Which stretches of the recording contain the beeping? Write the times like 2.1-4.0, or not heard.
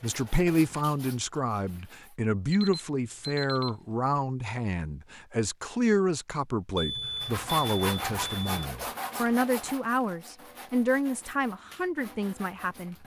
2.5-3.8, 6.8-8.7.